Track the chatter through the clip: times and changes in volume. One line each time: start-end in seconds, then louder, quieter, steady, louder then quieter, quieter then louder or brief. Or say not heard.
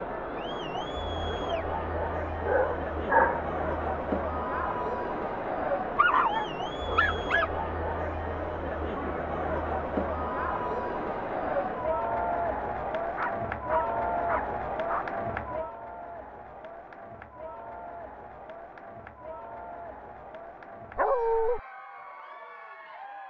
0.0-23.2 quieter.